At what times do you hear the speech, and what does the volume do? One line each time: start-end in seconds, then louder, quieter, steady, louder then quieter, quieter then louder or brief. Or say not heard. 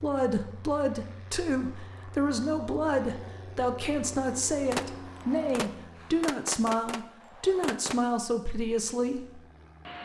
0.0-9.4 steady.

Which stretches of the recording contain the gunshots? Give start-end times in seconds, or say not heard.
4.7-8.1.